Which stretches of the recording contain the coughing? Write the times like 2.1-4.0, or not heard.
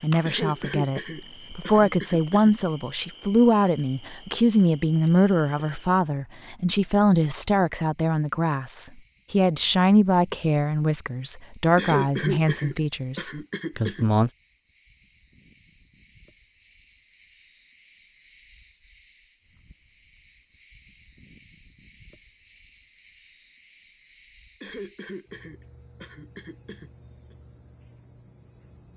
0.2-2.5, 11.8-14.1, 24.6-27.4.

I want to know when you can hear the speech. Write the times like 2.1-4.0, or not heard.
0.0-14.3.